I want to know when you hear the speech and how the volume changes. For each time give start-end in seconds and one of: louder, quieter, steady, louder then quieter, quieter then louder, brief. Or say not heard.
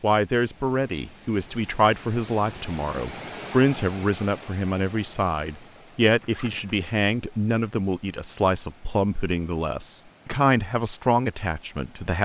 0.0-12.1 steady.